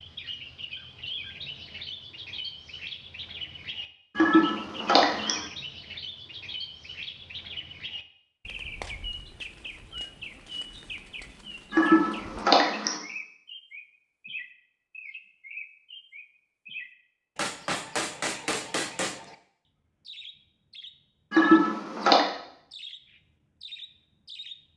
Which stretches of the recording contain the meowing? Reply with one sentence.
You can hear the meowing from 4.2 to 5.4 s, from 11.7 to 13.0 s and from 21.3 to 22.2 s.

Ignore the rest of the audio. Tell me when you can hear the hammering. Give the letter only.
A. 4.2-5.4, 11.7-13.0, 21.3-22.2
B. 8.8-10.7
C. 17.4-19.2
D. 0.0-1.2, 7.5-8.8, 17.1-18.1
C.